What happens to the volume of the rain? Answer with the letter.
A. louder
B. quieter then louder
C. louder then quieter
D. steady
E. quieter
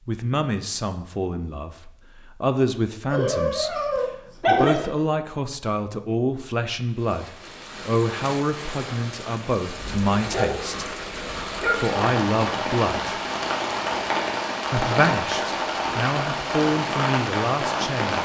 A.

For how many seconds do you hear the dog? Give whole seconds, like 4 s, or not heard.
4 s.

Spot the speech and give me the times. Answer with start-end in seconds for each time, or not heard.
0.1-10.9, 11.7-13.2, 14.7-18.1.